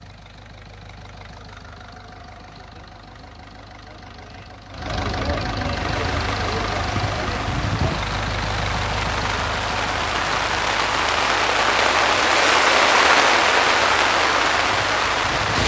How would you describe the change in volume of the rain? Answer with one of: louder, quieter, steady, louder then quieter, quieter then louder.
louder.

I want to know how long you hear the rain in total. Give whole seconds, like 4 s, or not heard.
10 s.